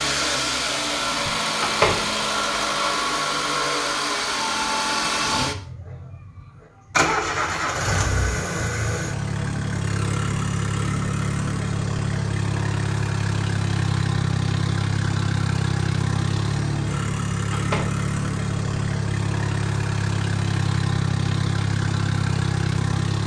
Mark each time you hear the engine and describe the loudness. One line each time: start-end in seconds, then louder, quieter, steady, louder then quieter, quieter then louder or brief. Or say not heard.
0.0-23.2 steady.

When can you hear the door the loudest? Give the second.
2 s.